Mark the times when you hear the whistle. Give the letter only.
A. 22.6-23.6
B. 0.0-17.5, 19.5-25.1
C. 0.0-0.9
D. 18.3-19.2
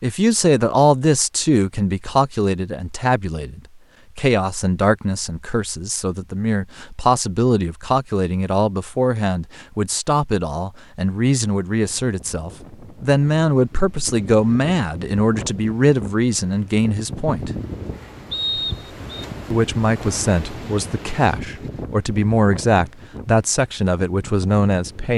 D.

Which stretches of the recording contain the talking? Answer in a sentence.
You can hear the talking from 0.0 to 17.5 s and from 19.5 to 25.1 s.